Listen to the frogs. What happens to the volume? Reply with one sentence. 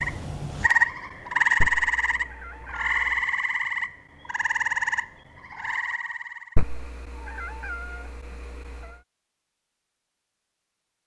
The volume of the frogs goes down.